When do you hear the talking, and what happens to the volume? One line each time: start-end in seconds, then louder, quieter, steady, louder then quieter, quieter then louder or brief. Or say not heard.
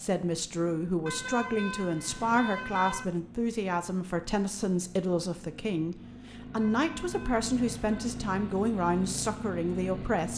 0.0-10.3 steady.